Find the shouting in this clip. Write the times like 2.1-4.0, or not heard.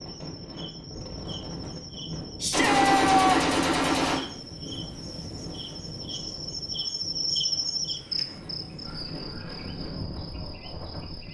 2.4-3.5.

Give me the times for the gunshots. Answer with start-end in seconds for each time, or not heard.
2.5-4.2.